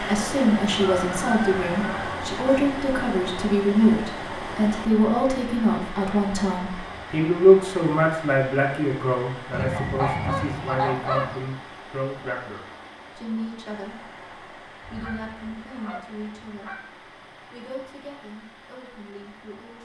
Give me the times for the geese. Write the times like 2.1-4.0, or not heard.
0.7-2.6, 9.5-11.4, 14.8-16.8.